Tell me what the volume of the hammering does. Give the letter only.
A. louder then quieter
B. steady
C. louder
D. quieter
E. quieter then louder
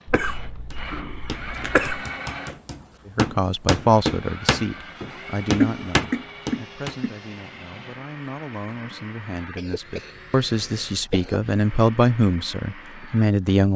C.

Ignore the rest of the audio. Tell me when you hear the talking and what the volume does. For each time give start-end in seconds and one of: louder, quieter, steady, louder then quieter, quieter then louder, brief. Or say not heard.
3.0-13.7 quieter then louder.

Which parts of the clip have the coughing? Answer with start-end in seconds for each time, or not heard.
0.1-2.0, 5.6-7.2, 9.6-11.4.